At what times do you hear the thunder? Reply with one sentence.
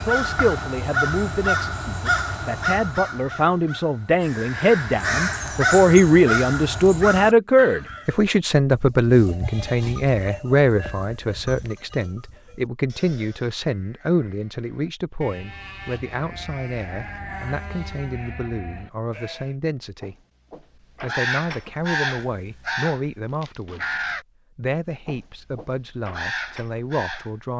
You can't hear the thunder here.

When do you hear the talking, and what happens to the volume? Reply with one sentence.
The talking can be heard from 0.0 to 20.1 s, getting louder then quieter; briefly from 21.0 to 23.9 s; and briefly from 24.6 to 27.5 s.